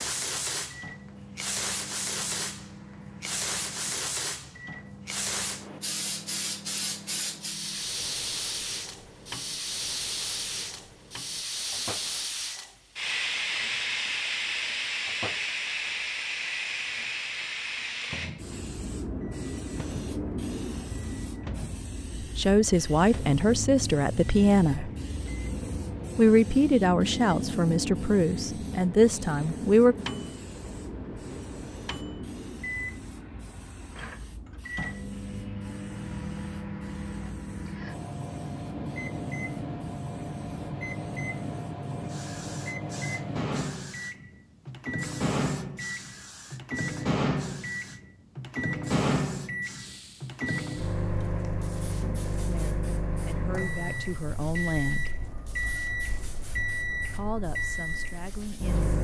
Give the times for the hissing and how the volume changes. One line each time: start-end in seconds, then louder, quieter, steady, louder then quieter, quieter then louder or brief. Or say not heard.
0.0-58.9 quieter.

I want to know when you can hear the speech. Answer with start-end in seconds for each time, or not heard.
22.2-24.9, 26.1-29.9, 52.5-55.1, 57.1-58.8.